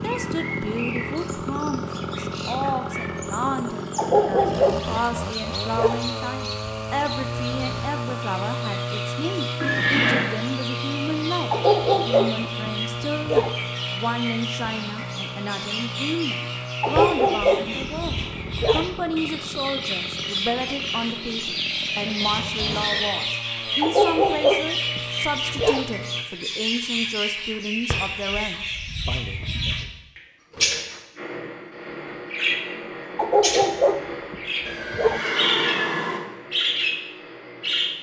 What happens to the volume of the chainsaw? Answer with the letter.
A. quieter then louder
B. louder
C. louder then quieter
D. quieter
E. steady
D.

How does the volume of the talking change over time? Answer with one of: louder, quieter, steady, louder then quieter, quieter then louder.
steady.